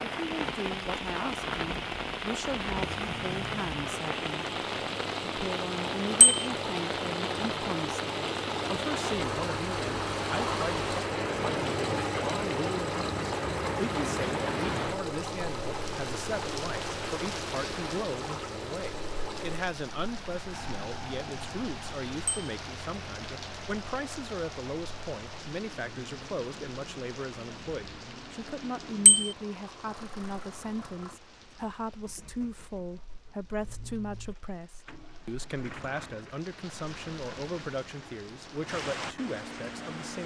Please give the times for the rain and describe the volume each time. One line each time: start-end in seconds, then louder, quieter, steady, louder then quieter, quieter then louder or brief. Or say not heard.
0.0-40.2 quieter.